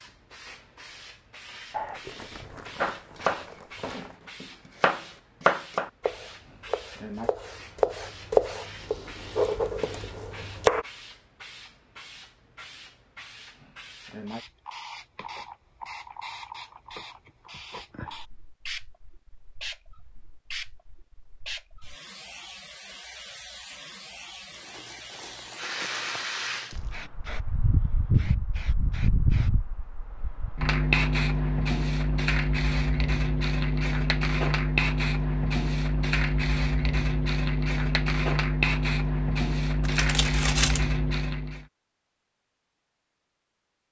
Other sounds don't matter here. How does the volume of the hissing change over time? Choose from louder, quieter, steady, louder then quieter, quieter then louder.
louder.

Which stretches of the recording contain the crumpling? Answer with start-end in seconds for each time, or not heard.
1.7-4.2, 24.5-26.9, 39.8-40.9.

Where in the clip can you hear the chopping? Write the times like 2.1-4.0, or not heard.
2.8-10.8.